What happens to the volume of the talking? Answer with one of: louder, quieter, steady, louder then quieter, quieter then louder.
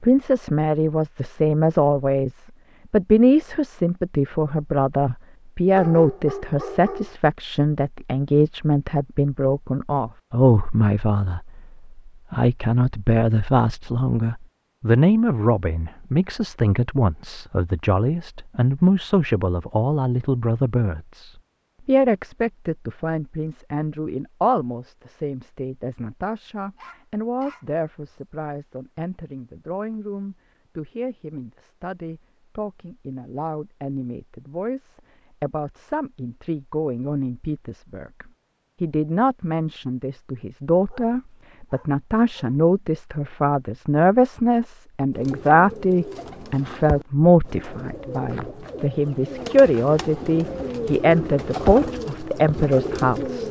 quieter then louder.